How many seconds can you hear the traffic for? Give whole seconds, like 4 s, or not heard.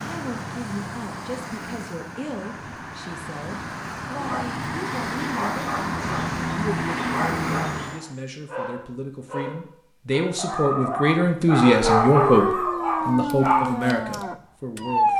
8 s.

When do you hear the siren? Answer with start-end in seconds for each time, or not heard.
11.7-15.1.